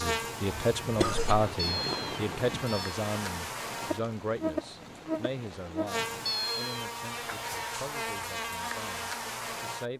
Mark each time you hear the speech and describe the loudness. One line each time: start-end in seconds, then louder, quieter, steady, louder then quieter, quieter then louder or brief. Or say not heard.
0.0-9.9 quieter.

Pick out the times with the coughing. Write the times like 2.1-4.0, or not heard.
0.5-1.5.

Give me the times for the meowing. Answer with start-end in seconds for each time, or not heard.
1.6-3.0, 6.2-6.8.